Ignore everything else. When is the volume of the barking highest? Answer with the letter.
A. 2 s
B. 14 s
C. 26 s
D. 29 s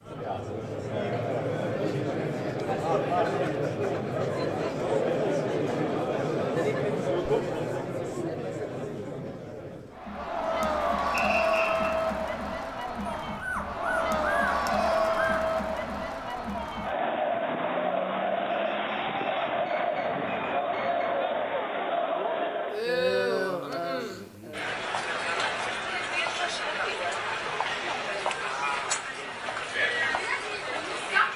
B.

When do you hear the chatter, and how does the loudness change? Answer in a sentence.
You can hear the chatter from 0.0 to 31.3 s, at a steady volume.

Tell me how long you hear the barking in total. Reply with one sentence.
You can hear the barking for 2 seconds altogether.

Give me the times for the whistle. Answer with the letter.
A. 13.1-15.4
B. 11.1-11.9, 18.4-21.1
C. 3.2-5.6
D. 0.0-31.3
B.